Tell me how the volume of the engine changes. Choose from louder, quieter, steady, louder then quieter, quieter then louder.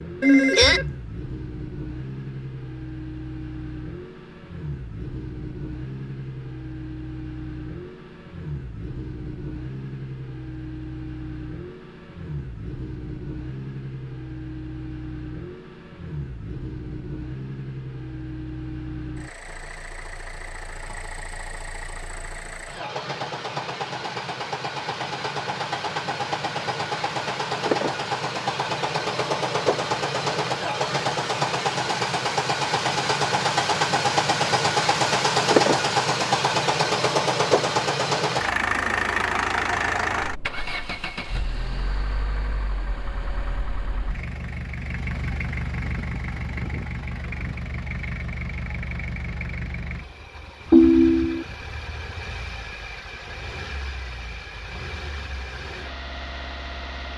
louder then quieter.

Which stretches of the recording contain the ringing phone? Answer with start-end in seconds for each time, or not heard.
0.2-0.9, 50.7-51.5.